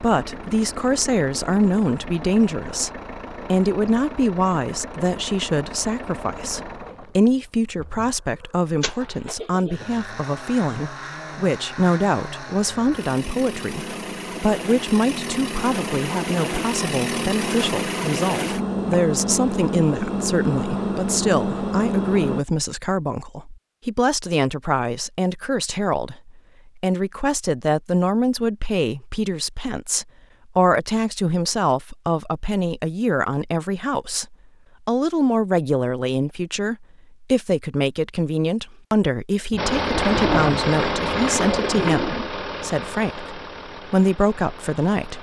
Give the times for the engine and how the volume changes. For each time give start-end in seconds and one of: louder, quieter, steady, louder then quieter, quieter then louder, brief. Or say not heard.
0.0-22.4 louder
39.5-45.1 quieter.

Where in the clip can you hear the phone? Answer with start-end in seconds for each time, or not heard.
not heard.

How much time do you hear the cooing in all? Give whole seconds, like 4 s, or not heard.
3 s.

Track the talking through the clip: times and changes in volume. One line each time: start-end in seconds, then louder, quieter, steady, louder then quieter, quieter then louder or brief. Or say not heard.
0.0-2.9 brief
3.5-45.1 steady.